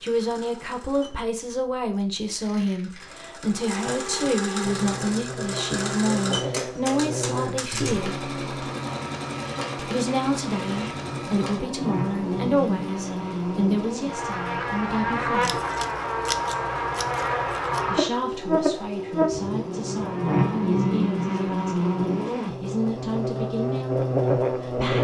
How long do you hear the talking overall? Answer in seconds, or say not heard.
21 s.